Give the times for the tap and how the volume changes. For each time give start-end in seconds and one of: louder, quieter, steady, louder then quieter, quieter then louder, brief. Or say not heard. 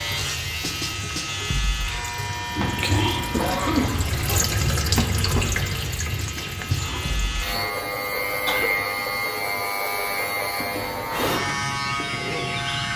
0.0-7.7 louder then quieter.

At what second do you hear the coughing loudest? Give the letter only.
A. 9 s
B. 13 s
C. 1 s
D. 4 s
D.